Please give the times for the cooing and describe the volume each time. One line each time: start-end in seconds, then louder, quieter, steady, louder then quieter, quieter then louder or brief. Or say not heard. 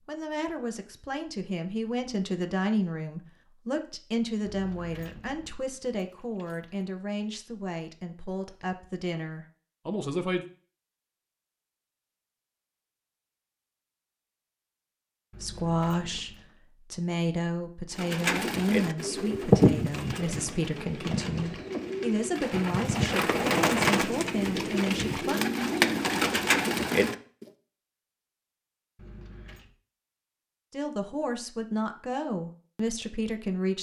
17.9-27.4 quieter then louder.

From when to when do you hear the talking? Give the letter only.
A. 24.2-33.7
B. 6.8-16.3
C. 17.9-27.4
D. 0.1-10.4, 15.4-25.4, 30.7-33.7
D.